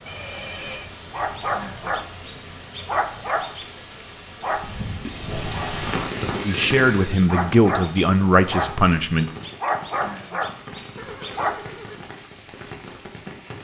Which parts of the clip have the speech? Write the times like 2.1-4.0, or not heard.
6.5-9.3.